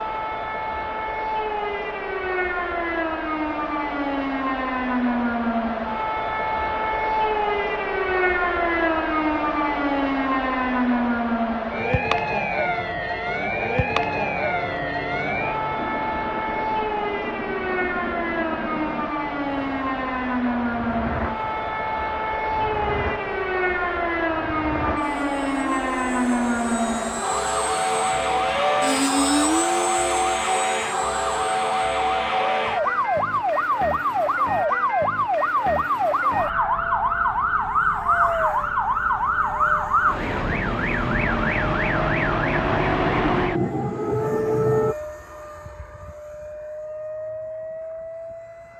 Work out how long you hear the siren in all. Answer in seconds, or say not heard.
45 s.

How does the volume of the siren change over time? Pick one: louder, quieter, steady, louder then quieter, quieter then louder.
steady.